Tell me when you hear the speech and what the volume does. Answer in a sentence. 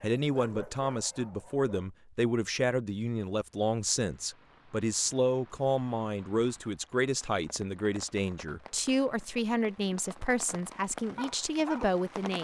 The speech can be heard from 0.0 to 12.3 s, at a steady volume.